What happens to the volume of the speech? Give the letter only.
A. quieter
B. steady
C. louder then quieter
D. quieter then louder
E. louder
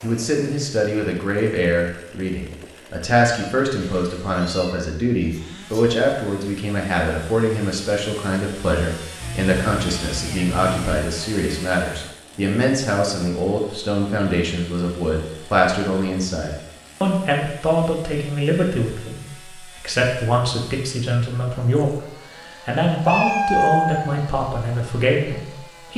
B.